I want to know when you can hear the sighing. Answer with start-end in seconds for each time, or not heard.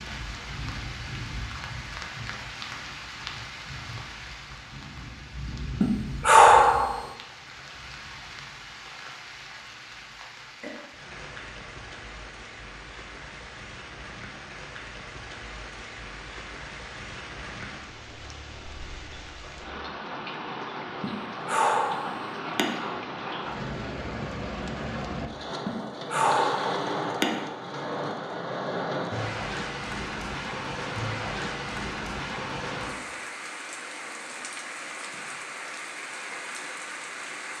5.8-7.0, 21.0-22.6, 25.6-27.2.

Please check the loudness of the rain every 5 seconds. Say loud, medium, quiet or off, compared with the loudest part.
medium, medium, medium, medium, loud, loud, loud, medium.